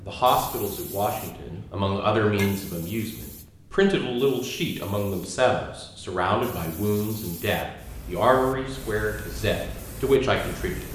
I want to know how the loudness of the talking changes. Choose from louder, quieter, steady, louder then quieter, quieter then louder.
steady.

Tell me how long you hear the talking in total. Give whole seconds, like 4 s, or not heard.
11 s.